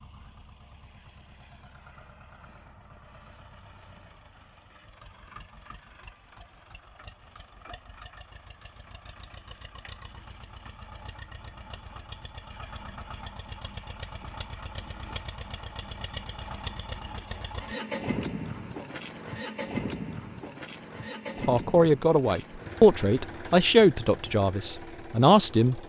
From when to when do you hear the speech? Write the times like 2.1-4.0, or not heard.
21.4-25.8.